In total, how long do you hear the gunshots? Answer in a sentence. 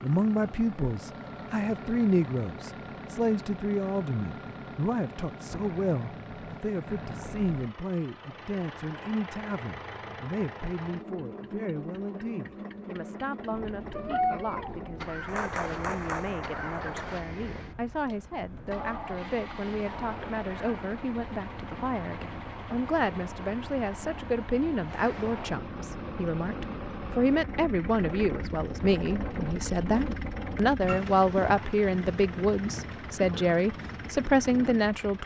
The gunshots can be heard for 2 seconds in total.